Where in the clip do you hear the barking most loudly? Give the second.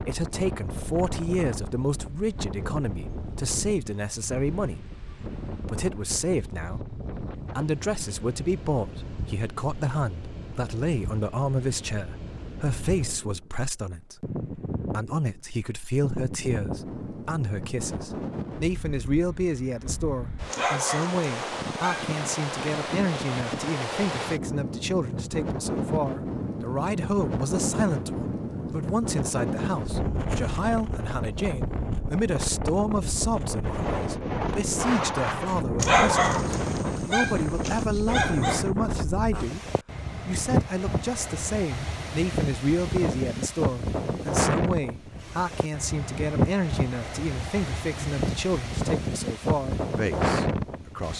36 s.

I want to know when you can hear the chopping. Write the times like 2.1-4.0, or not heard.
not heard.